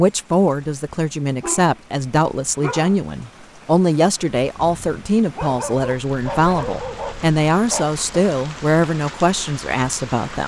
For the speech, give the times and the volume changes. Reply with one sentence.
The speech can be heard from 0.0 to 10.4 s, at a steady volume.